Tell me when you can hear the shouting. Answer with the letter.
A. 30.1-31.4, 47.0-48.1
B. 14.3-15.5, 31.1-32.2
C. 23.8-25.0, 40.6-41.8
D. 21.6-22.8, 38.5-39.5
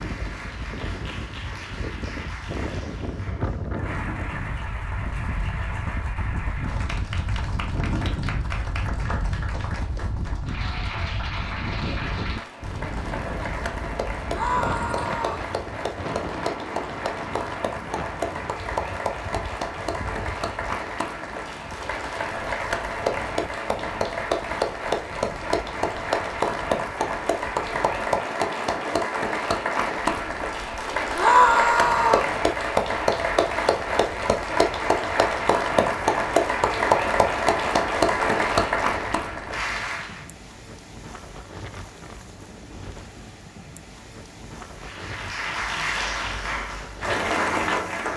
B.